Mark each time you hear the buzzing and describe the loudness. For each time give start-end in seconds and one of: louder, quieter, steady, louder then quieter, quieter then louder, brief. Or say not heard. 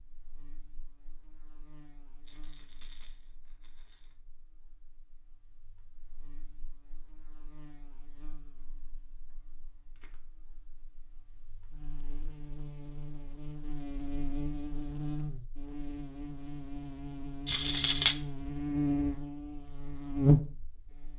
0.0-21.1 louder.